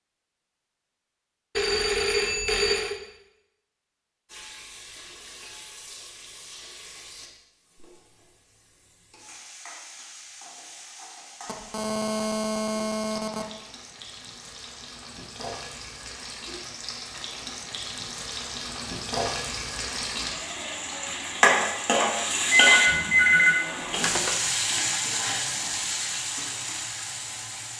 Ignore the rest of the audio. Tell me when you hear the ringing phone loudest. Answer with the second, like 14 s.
23 s.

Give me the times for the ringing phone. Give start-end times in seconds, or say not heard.
1.6-3.0, 11.4-13.4, 22.5-24.4.